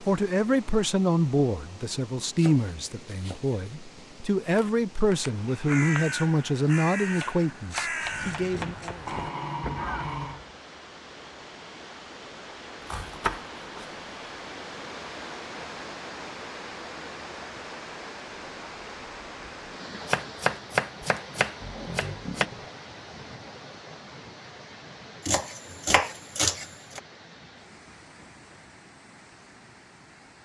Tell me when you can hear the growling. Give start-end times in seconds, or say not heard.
9.1-10.4, 21.6-22.6.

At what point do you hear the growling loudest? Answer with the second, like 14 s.
10 s.